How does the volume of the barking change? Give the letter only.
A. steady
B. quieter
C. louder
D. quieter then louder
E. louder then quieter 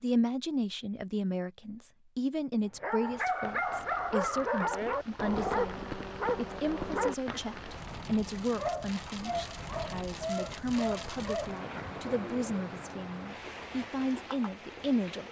B.